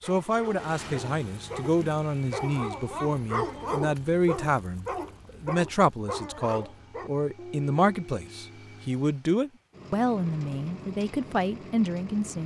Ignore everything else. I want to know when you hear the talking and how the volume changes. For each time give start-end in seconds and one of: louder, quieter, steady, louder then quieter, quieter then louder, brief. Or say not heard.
0.0-12.4 steady.